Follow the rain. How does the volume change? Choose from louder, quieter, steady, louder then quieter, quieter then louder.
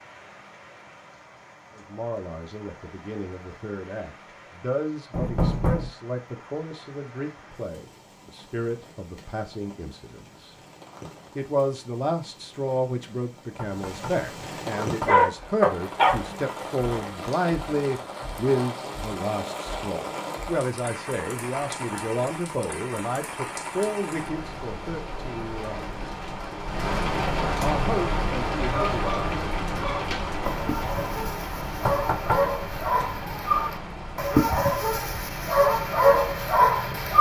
louder.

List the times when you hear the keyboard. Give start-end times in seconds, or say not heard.
not heard.